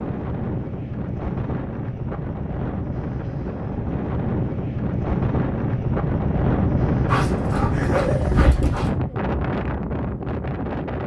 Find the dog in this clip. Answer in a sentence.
The dog can be heard from 7.0 to 8.9 s.